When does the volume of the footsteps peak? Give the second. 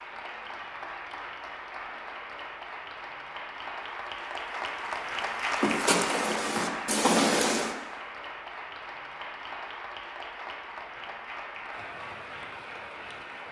7 s.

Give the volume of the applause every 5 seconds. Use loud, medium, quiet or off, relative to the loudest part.
loud, loud, medium.